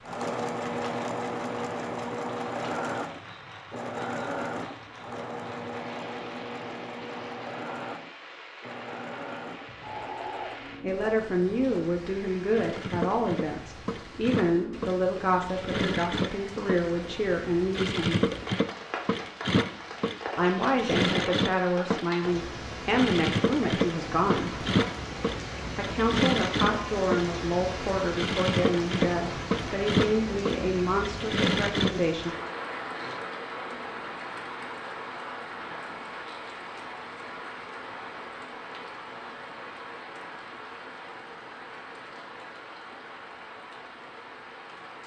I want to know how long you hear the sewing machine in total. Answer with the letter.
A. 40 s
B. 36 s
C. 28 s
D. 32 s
D.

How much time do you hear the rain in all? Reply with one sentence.
You can hear the rain for 45 seconds altogether.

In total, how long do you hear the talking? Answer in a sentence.
You can hear the talking for 18 seconds altogether.